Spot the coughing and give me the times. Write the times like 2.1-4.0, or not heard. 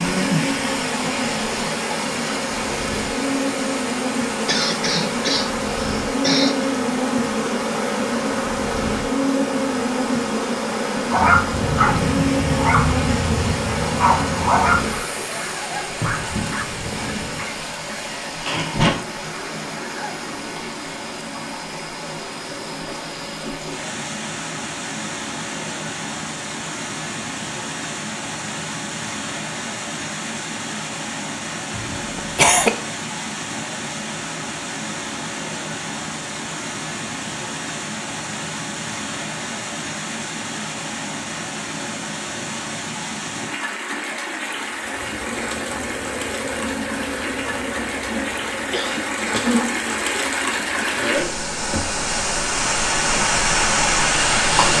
4.5-6.7, 31.8-32.7, 48.7-49.6.